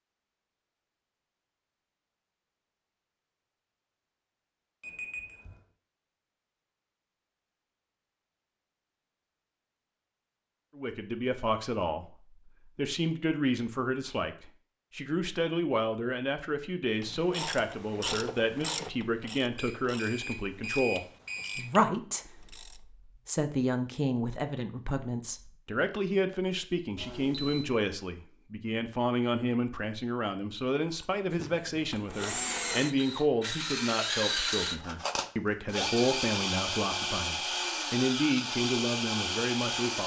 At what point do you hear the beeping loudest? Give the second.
21 s.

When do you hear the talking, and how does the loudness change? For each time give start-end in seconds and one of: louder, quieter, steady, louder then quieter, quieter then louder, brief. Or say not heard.
10.8-12.2 brief
12.8-40.0 steady.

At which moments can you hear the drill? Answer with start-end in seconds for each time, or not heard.
30.9-40.0.